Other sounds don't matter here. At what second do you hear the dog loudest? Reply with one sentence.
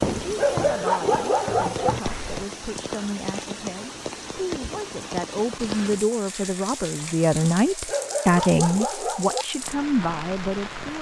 The loudest moment of the dog is at 1 second.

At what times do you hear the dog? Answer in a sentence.
The dog can be heard from 0.3 to 1.9 s and from 7.8 to 9.4 s.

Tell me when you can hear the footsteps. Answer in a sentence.
The footsteps can be heard from 0.0 to 2.5 s.